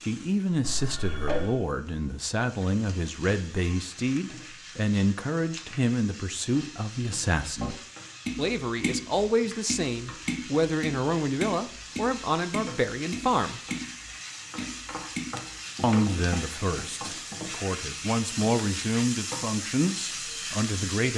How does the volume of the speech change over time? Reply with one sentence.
The volume of the speech stays about the same.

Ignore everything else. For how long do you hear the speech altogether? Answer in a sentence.
The speech can be heard for 18 seconds in total.